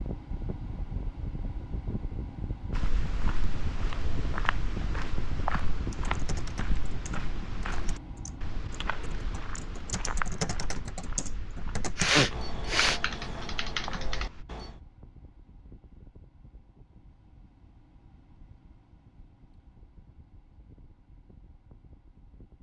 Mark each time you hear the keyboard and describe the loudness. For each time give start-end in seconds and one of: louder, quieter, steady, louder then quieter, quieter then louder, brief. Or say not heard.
5.9-14.8 louder.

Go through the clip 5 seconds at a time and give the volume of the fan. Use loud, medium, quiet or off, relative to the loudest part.
loud, loud, medium, quiet, quiet.